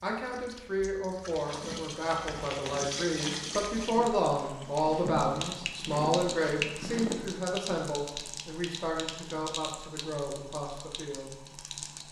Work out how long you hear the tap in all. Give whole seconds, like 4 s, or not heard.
12 s.